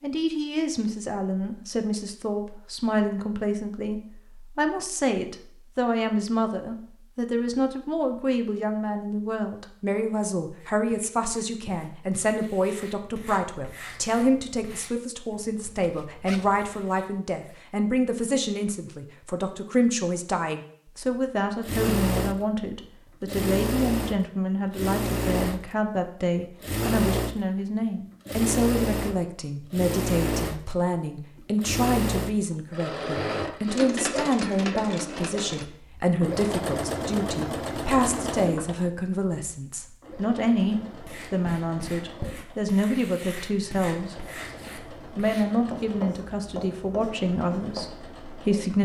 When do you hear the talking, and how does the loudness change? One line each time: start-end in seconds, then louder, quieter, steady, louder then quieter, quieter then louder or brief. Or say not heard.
0.0-48.7 steady.